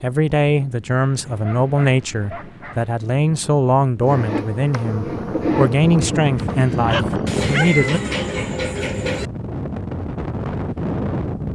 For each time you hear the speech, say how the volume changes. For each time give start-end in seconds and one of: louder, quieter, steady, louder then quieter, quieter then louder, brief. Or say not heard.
0.0-8.0 steady.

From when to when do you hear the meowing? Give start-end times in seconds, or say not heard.
7.2-9.3.